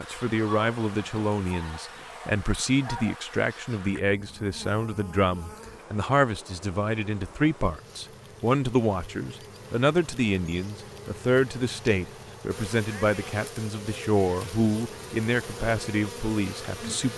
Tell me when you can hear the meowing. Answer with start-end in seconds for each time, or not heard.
not heard.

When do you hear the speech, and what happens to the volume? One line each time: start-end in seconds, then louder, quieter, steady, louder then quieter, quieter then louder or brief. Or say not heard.
0.0-17.1 steady.